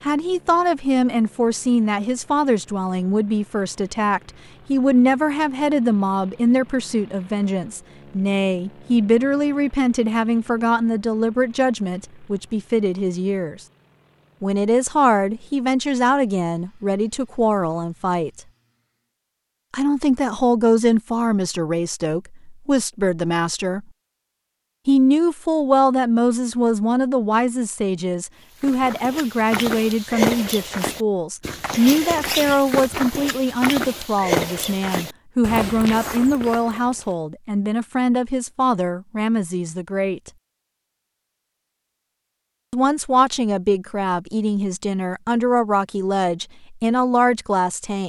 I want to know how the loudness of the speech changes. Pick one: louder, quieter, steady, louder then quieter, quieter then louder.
steady.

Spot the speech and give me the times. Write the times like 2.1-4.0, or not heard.
0.0-13.6, 14.4-18.4, 19.7-23.9, 24.9-40.3, 42.7-48.0.